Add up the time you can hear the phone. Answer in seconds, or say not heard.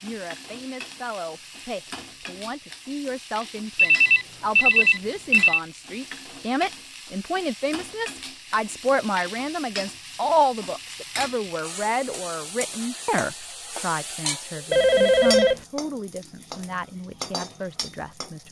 3 s.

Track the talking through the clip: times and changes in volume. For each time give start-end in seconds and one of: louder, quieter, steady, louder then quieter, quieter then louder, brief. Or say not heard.
0.0-18.4 louder then quieter.